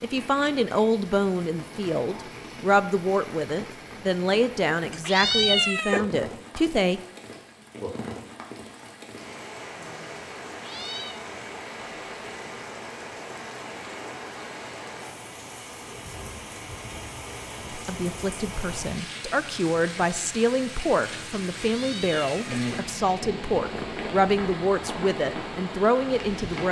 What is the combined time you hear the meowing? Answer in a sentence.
The meowing can be heard for 3 seconds in total.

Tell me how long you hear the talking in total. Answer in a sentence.
You can hear the talking for 16 seconds altogether.